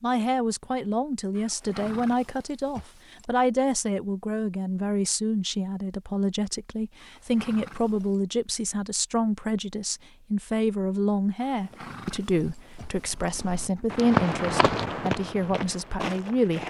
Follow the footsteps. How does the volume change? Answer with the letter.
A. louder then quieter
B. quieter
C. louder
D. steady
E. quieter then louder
A.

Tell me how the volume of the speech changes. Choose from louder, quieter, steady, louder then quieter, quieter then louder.
steady.